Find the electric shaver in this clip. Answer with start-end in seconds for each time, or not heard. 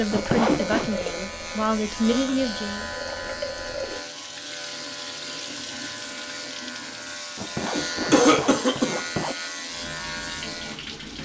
0.0-11.1.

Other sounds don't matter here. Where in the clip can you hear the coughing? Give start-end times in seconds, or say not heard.
7.6-9.0.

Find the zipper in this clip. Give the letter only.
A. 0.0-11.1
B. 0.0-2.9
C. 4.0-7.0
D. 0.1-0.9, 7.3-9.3
D.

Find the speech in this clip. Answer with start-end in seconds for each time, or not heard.
0.0-2.9.